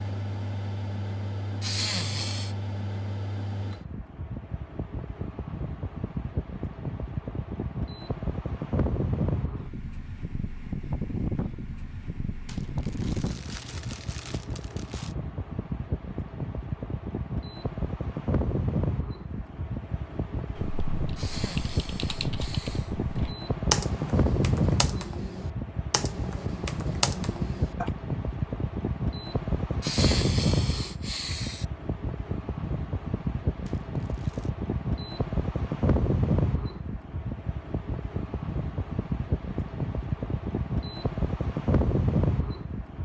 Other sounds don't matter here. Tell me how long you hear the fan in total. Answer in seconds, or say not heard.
43 s.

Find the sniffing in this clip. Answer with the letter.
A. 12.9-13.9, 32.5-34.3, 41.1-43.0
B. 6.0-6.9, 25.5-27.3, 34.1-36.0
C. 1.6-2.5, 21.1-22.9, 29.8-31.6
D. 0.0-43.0
C.